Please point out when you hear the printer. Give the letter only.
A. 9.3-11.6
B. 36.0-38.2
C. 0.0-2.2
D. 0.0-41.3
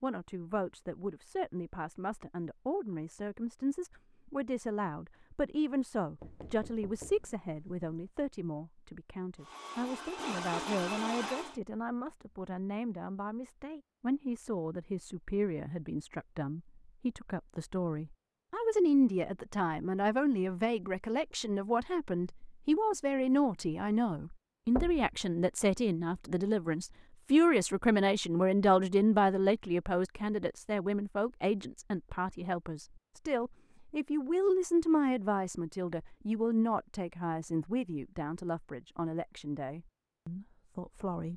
A.